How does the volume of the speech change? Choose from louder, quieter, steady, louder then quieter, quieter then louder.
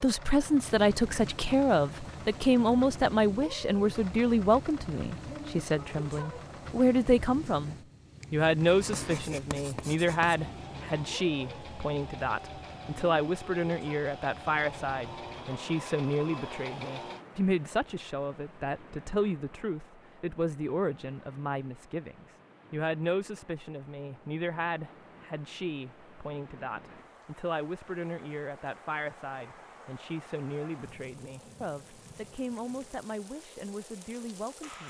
quieter.